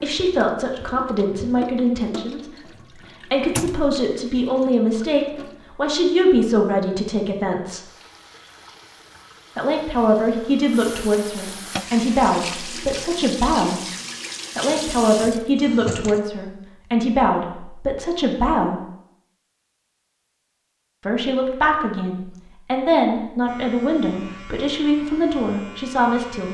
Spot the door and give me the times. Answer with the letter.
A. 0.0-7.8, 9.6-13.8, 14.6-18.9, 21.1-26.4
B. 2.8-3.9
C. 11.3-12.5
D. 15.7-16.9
B.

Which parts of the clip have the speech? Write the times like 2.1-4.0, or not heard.
0.0-7.8, 9.6-13.8, 14.6-18.9, 21.1-26.4.